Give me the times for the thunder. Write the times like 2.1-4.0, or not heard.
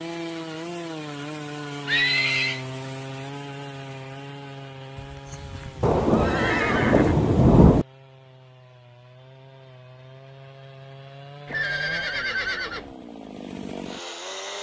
5.8-7.8.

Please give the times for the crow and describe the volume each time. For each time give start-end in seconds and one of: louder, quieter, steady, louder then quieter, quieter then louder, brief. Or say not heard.
not heard.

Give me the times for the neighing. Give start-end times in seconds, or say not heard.
1.9-2.6, 5.0-7.2, 11.4-12.9.